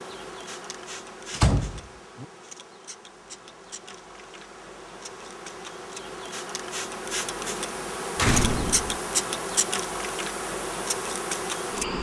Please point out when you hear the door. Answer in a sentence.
The door can be heard from 1.3 to 2.2 s and from 8.2 to 9.0 s.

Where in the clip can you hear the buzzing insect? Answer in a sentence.
You can hear the buzzing insect from 0.0 to 11.9 s.